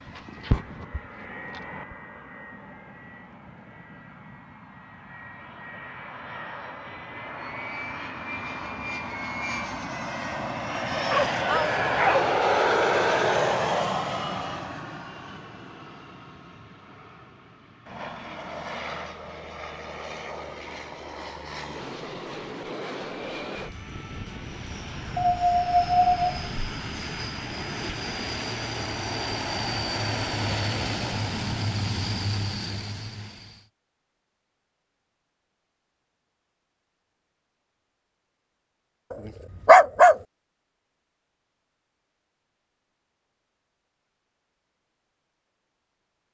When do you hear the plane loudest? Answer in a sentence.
The loudest moment of the plane is at 13 seconds.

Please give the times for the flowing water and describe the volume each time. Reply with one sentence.
The flowing water can't be heard in this clip.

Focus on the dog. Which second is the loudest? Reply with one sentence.
The volume of the dog peaks at 40 seconds.